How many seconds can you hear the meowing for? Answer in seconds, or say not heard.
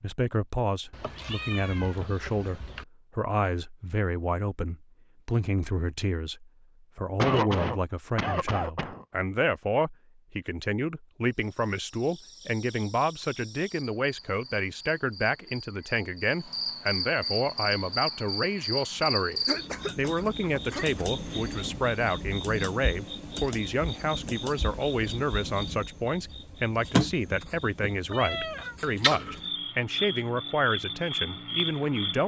3 s.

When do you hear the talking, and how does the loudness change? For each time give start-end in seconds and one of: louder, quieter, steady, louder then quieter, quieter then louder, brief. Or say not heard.
0.0-32.2 steady.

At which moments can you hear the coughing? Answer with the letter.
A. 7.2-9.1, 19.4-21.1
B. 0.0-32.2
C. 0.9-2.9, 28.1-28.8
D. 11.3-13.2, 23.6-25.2
A.